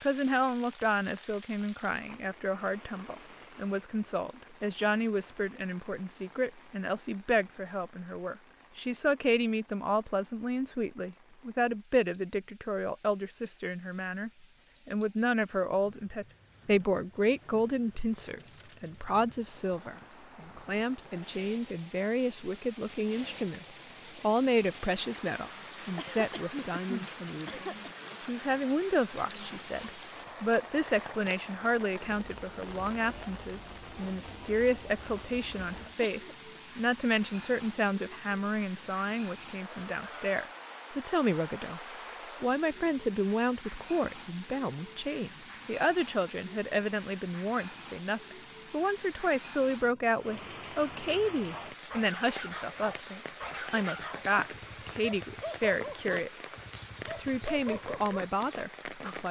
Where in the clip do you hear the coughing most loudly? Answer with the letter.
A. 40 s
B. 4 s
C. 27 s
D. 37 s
C.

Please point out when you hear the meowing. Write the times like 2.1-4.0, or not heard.
not heard.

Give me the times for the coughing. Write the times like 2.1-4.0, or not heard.
25.9-27.9, 36.0-36.6.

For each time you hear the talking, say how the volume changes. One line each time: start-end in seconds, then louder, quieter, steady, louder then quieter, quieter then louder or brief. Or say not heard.
0.0-41.8 steady
42.4-56.3 steady
57.1-59.2 brief.